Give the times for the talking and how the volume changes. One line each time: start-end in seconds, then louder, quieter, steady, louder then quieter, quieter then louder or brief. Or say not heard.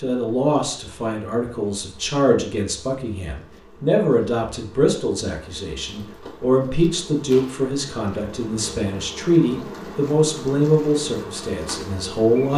0.0-12.5 steady.